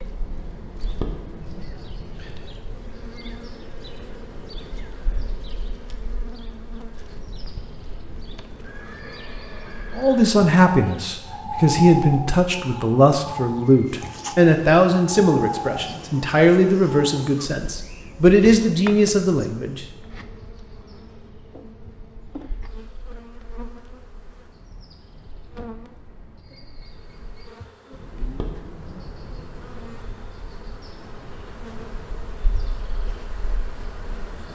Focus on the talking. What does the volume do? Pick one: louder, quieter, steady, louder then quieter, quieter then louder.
steady.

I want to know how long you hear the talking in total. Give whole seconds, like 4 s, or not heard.
10 s.